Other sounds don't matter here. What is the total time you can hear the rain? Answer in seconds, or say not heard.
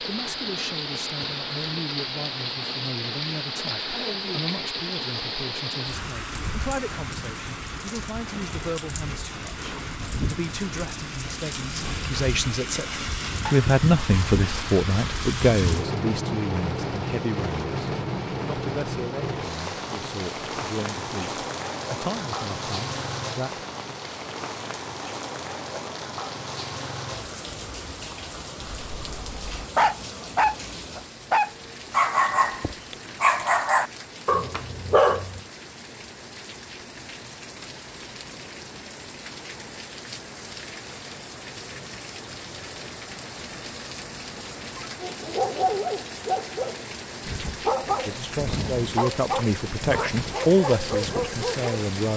52 s.